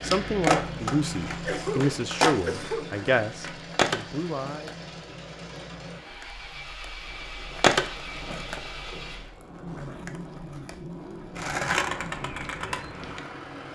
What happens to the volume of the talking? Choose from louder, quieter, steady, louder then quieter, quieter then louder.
quieter.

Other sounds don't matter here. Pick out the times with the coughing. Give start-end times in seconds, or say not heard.
1.4-3.0.